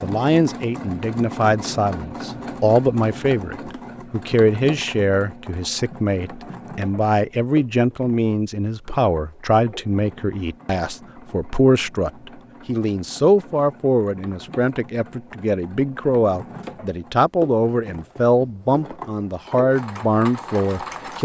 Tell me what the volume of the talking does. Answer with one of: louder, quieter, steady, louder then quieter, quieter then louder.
steady.